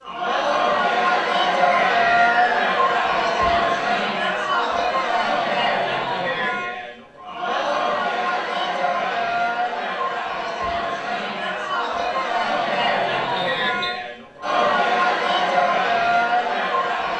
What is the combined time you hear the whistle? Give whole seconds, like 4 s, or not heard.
2 s.